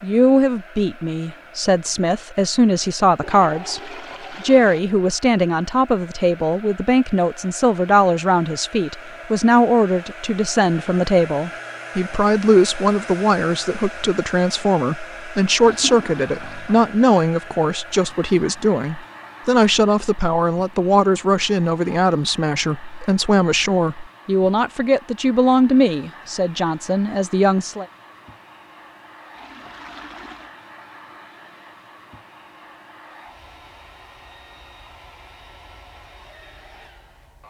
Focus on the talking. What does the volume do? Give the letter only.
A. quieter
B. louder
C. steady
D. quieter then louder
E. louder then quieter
C.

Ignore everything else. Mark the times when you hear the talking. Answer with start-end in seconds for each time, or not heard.
0.0-27.9.